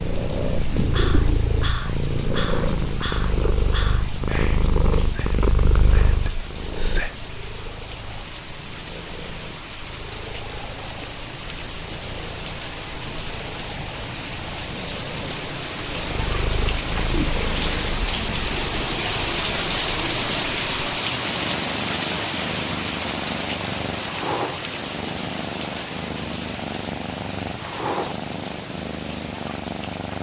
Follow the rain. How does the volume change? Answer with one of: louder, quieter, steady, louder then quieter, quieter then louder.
louder then quieter.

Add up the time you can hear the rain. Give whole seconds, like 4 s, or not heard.
30 s.